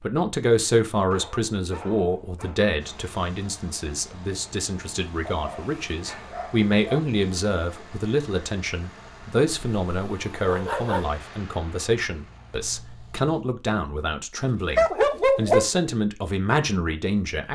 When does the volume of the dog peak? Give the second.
15 s.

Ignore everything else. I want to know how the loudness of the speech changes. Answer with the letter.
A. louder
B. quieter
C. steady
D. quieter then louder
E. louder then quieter
C.